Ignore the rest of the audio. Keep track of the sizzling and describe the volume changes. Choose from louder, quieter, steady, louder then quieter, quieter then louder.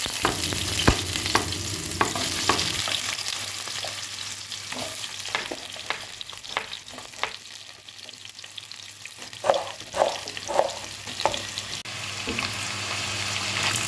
quieter then louder.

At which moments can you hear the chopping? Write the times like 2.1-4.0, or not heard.
0.2-2.9, 5.3-7.3, 9.4-11.4.